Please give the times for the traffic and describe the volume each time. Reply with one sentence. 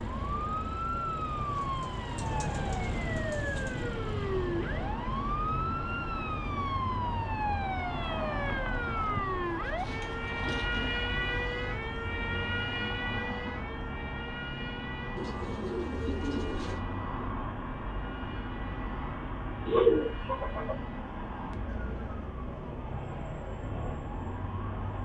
The traffic can be heard from 0.0 to 25.0 s, at a steady volume.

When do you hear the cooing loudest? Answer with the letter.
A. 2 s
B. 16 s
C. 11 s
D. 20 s
D.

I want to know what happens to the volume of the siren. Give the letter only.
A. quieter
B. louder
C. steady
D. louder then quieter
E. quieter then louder
A.